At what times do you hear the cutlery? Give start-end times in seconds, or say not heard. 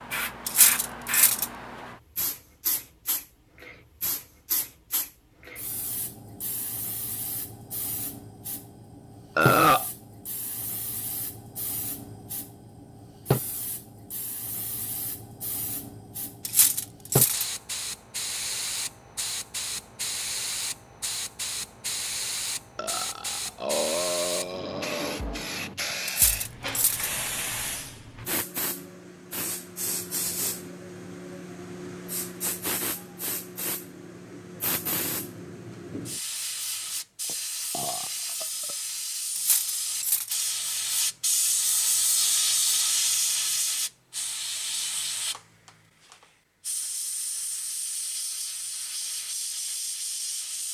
0.5-1.4, 16.4-17.4, 26.1-27.1, 39.4-40.4.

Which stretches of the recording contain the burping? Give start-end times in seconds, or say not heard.
9.3-9.8, 22.8-25.2, 37.2-38.8.